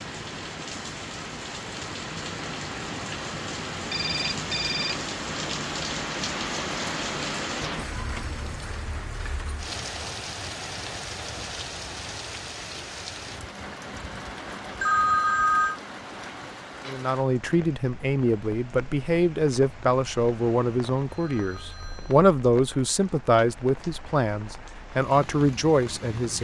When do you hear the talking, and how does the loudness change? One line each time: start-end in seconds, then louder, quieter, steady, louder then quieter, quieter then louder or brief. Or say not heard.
16.9-26.3 steady.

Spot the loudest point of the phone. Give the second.
15 s.